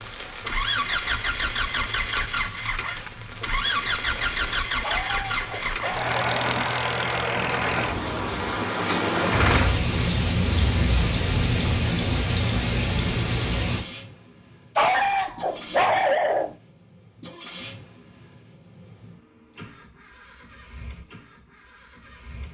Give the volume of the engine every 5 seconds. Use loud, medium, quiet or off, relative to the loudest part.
loud, loud, medium, quiet, quiet.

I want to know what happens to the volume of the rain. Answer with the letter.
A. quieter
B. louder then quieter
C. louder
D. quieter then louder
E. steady
C.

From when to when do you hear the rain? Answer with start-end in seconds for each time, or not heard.
0.0-13.8.